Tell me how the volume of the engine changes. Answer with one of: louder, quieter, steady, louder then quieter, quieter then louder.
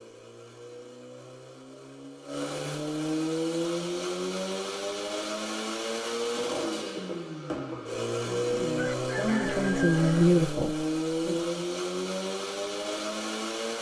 louder.